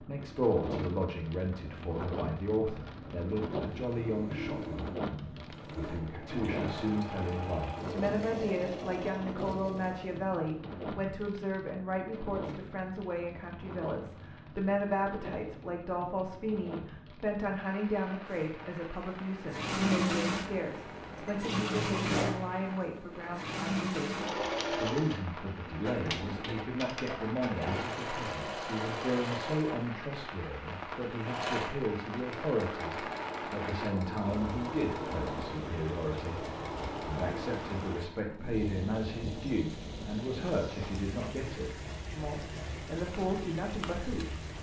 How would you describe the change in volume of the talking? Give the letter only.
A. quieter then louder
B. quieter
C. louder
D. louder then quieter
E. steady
E.